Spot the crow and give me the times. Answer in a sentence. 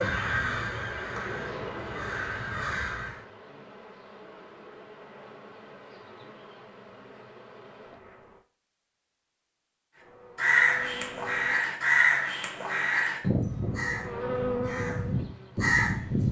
The crow can be heard from 0.0 to 3.2 s and from 10.3 to 16.2 s.